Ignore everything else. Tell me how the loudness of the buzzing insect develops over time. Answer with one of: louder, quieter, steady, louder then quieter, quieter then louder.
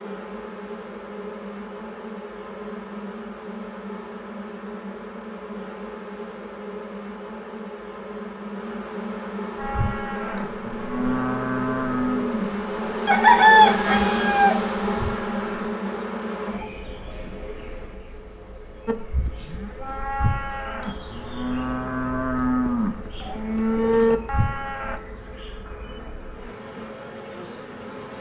louder then quieter.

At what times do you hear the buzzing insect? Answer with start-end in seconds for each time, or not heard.
0.0-28.1.